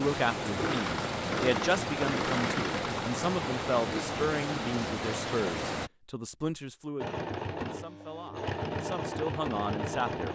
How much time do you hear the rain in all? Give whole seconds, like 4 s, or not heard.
6 s.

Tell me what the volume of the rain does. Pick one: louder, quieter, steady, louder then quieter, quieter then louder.
steady.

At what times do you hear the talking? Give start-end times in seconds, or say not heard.
0.0-10.3.